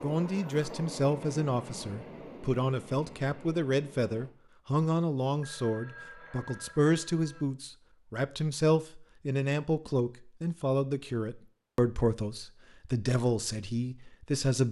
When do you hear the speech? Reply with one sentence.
The speech can be heard from 0.0 to 14.6 s.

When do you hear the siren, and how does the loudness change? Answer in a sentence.
The siren can't be heard in this clip.